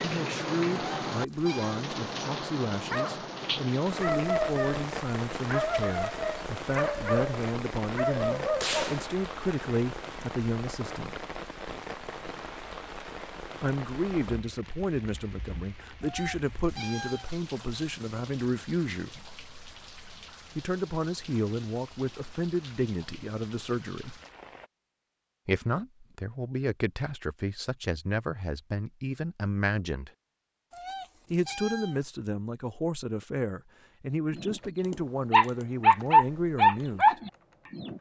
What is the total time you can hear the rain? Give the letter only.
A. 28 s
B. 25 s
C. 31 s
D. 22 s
B.